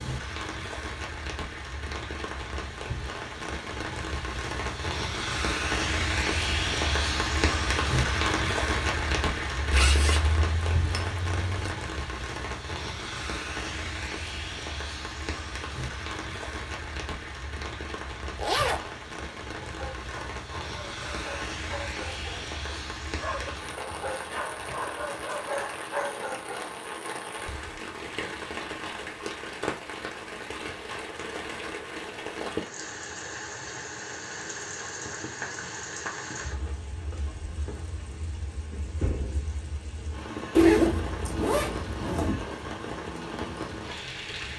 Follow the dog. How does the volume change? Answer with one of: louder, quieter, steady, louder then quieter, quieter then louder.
louder.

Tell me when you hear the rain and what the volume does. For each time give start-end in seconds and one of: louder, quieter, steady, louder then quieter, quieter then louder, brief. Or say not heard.
0.0-44.5 quieter.